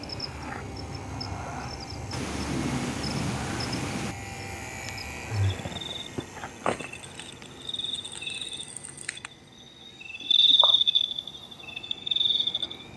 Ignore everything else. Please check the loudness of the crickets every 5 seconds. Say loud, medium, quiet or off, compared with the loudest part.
quiet, medium, loud.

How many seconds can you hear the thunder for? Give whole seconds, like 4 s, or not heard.
2 s.